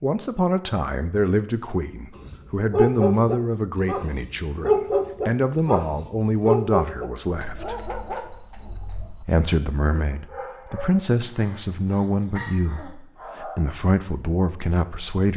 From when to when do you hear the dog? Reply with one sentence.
The dog can be heard from 2.1 to 13.6 s.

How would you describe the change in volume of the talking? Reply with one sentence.
The volume of the talking stays about the same.